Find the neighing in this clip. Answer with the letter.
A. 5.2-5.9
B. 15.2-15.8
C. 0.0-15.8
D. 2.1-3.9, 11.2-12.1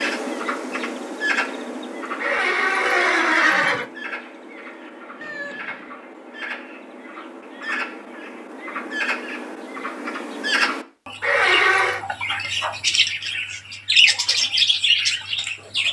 D.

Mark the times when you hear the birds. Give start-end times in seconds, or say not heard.
0.0-15.8.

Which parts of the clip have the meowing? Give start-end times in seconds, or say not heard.
5.2-5.9.